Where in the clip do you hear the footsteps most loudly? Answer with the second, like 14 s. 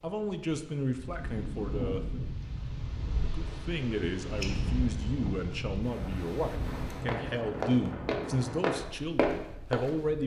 9 s.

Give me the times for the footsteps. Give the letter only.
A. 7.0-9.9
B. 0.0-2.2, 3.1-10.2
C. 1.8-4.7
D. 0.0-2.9
A.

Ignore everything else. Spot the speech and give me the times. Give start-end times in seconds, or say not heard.
0.0-2.2, 3.1-10.2.